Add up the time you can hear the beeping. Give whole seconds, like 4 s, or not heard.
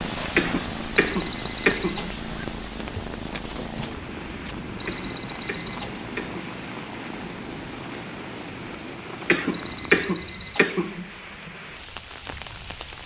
4 s.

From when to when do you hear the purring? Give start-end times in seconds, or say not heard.
0.0-10.1.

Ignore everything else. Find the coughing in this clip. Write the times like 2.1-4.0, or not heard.
0.3-2.1, 4.8-6.4, 9.2-11.1.